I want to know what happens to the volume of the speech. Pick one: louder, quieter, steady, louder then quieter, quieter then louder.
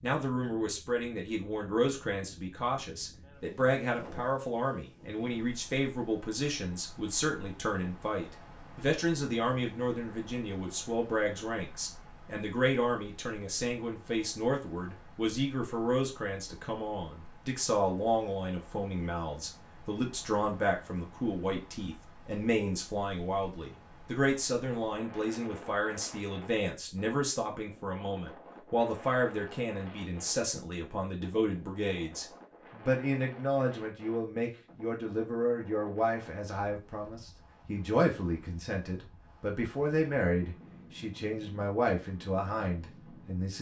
steady.